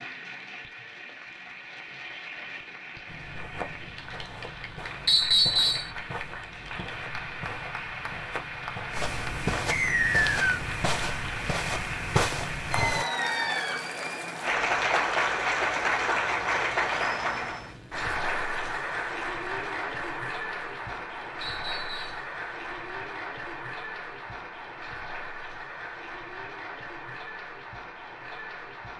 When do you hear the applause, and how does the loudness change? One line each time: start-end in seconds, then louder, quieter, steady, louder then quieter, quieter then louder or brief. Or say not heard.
0.0-28.9 louder then quieter.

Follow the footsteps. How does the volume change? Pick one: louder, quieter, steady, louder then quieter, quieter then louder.
louder.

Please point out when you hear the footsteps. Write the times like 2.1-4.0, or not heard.
3.0-13.1.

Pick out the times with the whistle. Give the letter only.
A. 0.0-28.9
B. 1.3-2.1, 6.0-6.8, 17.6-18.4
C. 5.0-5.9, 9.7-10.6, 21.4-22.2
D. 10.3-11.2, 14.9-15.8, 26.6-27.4
C.